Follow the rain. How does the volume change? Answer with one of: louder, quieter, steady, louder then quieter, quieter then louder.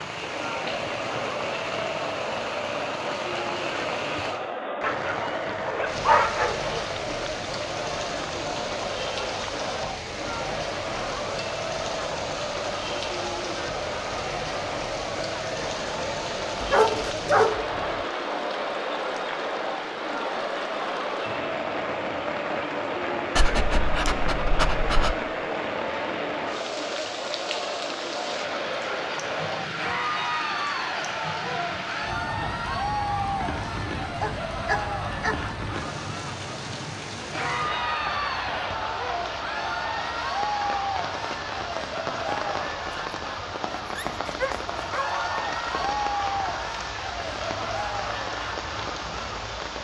steady.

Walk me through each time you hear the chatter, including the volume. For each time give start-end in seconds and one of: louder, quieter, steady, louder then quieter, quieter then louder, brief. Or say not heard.
0.0-49.8 steady.